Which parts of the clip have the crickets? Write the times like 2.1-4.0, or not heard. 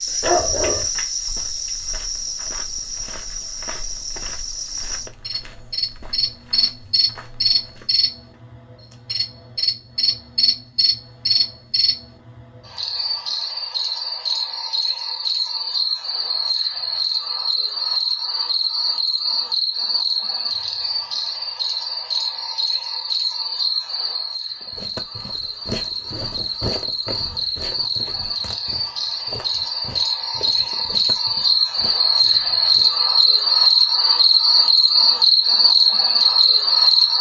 0.0-37.1.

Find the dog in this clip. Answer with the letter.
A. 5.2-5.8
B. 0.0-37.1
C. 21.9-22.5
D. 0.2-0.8
D.